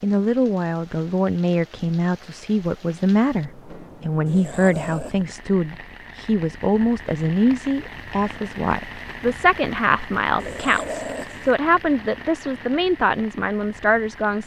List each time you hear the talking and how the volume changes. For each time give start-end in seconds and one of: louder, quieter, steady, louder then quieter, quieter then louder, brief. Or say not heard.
0.0-14.4 steady.